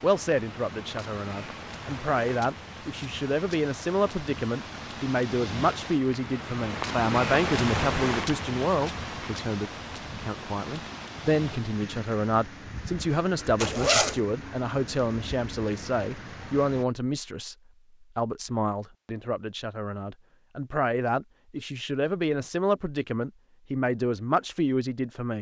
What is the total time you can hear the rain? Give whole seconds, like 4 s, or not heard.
17 s.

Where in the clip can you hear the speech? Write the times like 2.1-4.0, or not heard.
0.0-17.6, 18.1-25.3.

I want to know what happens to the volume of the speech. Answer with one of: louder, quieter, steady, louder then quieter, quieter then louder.
steady.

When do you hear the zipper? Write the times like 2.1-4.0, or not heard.
13.6-14.2.